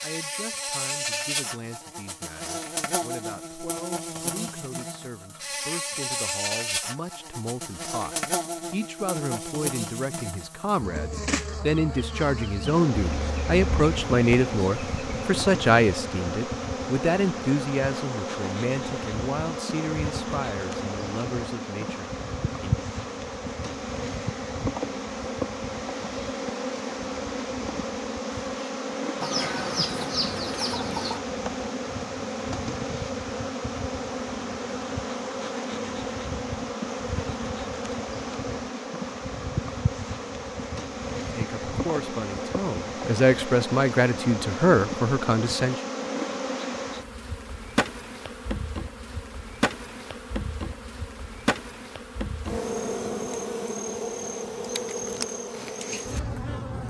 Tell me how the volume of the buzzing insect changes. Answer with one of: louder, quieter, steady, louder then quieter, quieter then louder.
steady.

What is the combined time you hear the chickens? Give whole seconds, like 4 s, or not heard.
4 s.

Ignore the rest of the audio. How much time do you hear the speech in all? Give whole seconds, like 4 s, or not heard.
27 s.